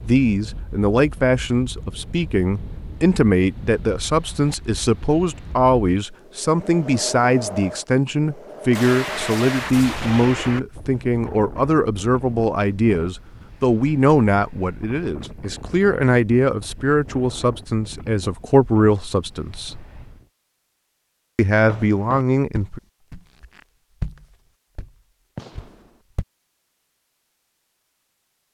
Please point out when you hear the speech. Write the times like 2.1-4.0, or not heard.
0.0-19.9, 21.4-22.8.